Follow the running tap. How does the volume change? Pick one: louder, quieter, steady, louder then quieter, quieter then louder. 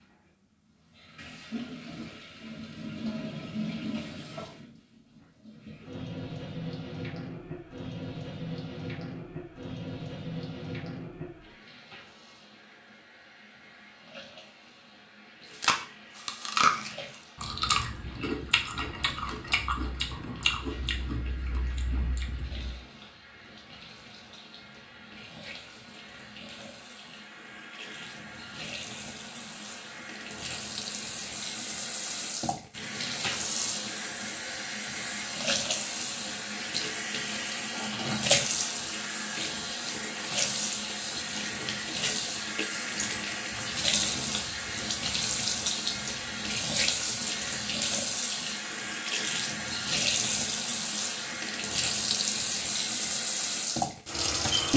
quieter then louder.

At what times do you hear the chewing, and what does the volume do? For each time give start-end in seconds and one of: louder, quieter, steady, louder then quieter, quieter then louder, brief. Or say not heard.
15.6-22.8 quieter.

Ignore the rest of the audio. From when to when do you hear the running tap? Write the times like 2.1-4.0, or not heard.
0.0-54.7.